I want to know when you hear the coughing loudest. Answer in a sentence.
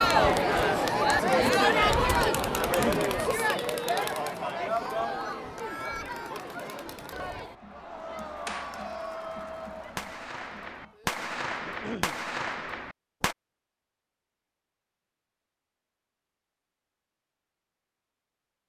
The loudest moment of the coughing is at 3 seconds.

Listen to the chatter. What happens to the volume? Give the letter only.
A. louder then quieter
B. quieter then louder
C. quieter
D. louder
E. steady
C.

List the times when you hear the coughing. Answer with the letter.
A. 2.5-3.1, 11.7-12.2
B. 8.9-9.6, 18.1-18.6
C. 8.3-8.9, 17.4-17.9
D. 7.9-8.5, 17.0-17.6
A.